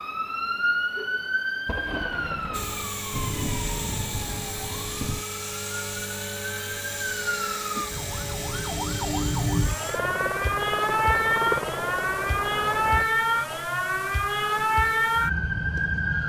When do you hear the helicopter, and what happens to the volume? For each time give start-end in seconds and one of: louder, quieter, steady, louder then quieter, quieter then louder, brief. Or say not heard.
2.5-13.1 steady.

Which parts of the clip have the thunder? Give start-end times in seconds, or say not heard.
1.6-5.2.